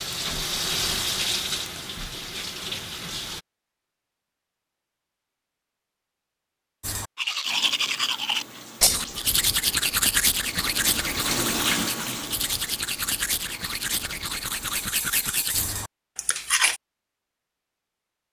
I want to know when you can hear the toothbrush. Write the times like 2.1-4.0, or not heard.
6.8-16.8.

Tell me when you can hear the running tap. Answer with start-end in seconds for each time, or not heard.
0.0-3.4, 7.5-14.9.